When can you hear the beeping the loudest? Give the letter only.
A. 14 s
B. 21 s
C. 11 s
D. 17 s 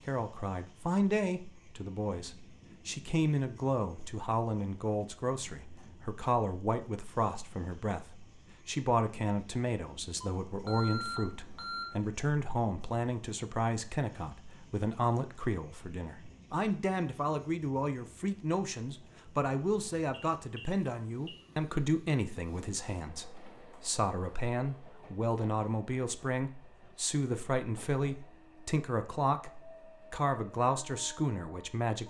C.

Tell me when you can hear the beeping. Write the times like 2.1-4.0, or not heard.
10.4-11.8, 20.1-21.4.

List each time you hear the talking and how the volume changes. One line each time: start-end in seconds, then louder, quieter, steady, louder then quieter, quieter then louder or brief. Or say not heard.
0.1-32.0 steady.